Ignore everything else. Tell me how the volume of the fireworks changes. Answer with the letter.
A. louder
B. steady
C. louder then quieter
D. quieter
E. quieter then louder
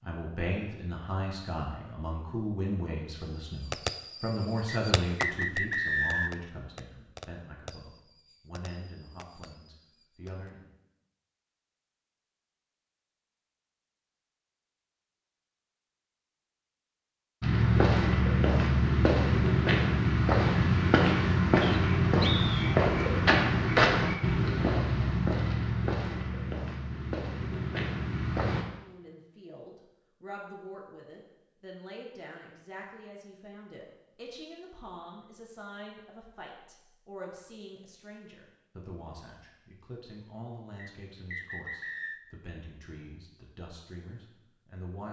D.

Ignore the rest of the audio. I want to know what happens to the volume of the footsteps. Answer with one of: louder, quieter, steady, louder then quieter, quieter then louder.
quieter.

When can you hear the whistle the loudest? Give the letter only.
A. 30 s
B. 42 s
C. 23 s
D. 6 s
D.